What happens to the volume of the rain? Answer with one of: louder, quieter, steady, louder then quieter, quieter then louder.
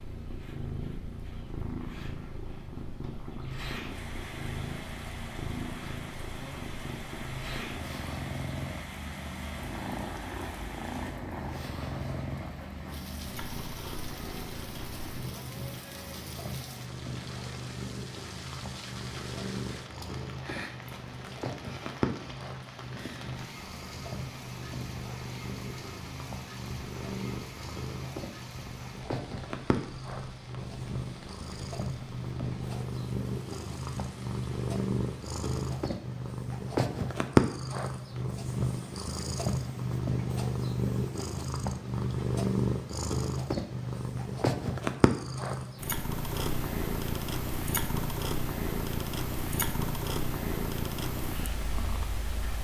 quieter.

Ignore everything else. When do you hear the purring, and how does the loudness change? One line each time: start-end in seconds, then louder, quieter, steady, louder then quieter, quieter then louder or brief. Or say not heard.
0.0-52.5 louder.